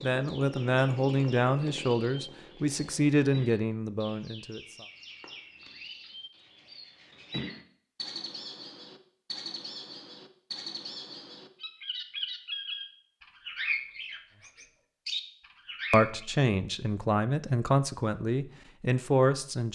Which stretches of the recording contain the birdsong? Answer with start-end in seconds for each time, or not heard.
0.0-16.2.